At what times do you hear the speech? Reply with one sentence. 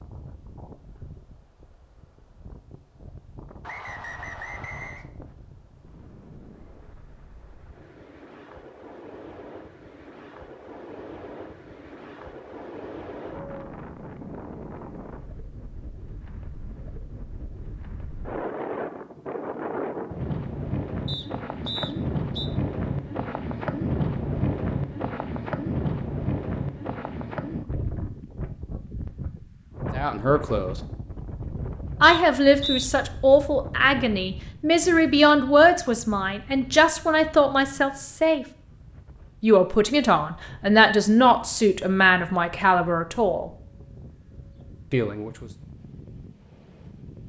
You can hear the speech from 29.9 to 30.8 s, from 32.0 to 38.5 s, from 39.4 to 43.5 s and from 44.9 to 45.5 s.